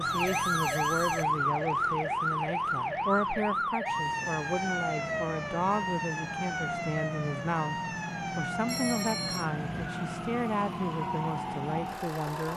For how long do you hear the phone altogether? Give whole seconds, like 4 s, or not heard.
2 s.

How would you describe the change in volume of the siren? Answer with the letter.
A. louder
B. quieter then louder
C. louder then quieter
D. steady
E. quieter
E.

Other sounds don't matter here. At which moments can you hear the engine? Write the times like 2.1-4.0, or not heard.
0.0-12.5.